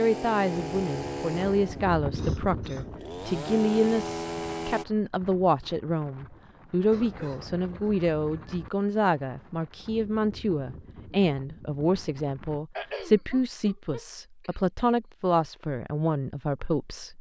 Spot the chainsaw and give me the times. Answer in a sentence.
The chainsaw can be heard from 0.0 to 4.8 s.